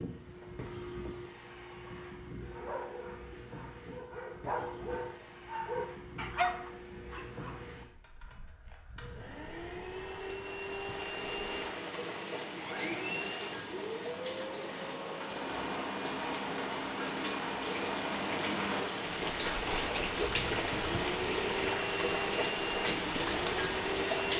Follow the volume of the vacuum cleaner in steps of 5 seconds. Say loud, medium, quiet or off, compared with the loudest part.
medium, medium, loud, loud, loud.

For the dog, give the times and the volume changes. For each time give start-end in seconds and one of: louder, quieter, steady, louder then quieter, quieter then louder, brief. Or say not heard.
2.5-7.6 louder.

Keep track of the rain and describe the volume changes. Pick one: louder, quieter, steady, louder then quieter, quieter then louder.
louder.